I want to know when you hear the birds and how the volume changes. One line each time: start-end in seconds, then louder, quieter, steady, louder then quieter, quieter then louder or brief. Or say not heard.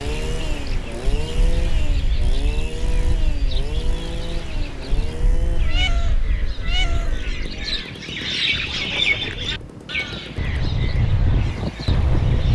0.0-12.5 louder then quieter.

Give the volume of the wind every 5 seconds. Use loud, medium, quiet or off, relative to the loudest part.
quiet, quiet, loud.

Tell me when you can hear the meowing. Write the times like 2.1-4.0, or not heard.
5.6-7.2.